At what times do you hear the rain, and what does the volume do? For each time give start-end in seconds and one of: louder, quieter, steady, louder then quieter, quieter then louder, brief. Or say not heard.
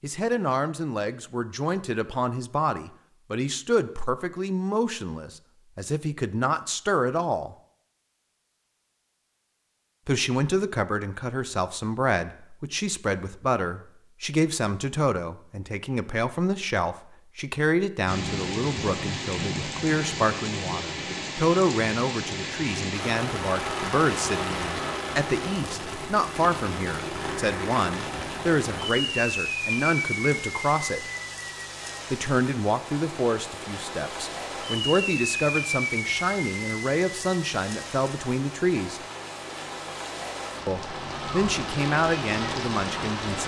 18.1-43.4 steady.